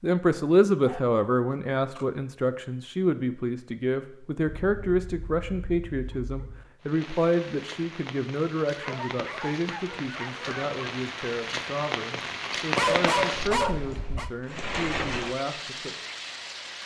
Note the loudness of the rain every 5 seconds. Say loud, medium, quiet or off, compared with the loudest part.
off, medium, loud, loud.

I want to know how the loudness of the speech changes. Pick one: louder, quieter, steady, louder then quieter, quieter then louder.
quieter.